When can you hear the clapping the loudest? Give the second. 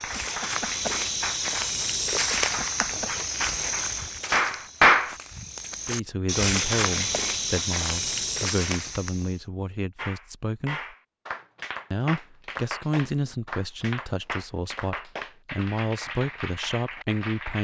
5 s.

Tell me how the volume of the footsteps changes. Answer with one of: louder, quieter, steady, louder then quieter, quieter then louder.
quieter then louder.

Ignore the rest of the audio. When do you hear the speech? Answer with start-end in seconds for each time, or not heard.
5.8-10.9, 11.9-17.5.